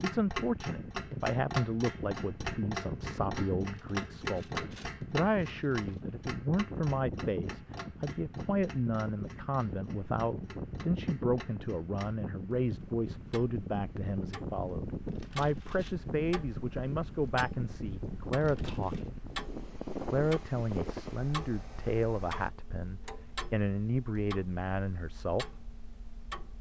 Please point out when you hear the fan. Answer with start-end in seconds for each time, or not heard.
0.0-22.5.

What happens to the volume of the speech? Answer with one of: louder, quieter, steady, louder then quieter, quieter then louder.
steady.